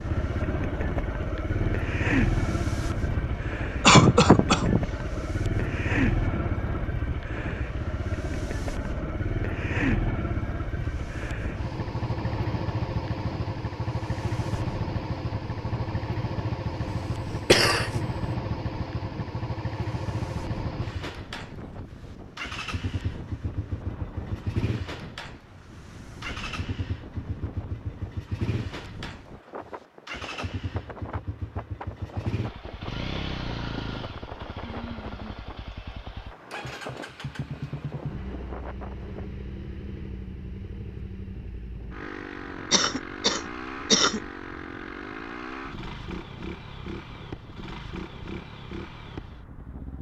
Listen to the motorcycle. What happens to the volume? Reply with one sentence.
The volume of the motorcycle goes down.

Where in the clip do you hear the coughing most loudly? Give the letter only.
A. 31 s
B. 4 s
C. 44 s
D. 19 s
B.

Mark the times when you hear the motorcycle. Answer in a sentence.
You can hear the motorcycle from 0.0 to 49.9 s.